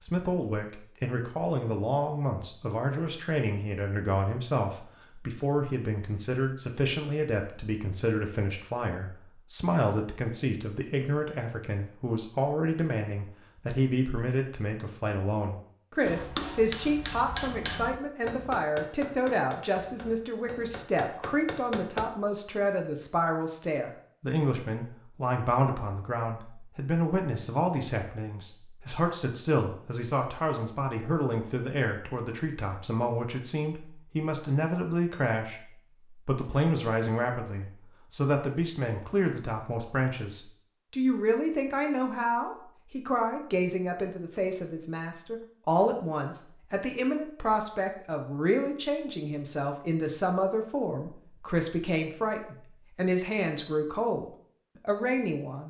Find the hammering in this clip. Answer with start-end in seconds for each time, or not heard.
16.0-22.1.